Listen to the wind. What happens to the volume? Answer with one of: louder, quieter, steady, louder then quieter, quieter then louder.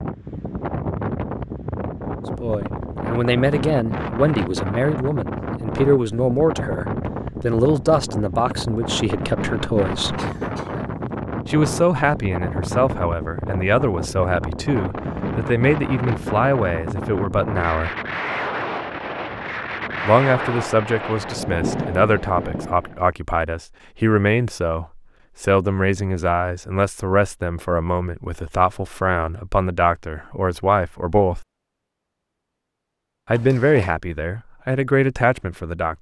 steady.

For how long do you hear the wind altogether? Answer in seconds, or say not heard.
23 s.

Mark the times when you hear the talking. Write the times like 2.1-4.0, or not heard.
2.4-10.2, 11.4-17.9, 20.1-31.4, 33.2-35.9.